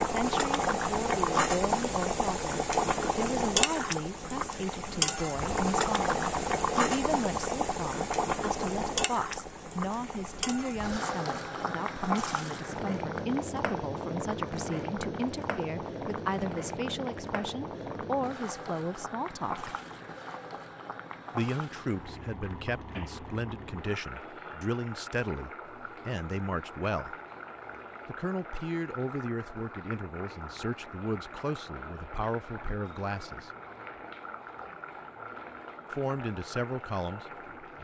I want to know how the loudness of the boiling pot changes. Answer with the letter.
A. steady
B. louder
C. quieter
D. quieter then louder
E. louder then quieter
C.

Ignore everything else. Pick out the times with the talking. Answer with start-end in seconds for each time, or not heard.
0.0-19.8, 21.3-27.1, 28.1-33.5, 35.9-37.7.